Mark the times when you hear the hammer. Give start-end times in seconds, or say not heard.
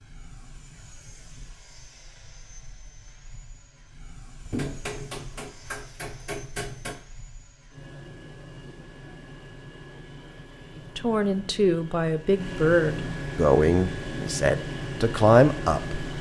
4.5-7.0.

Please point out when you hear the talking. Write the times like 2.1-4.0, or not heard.
10.9-16.0.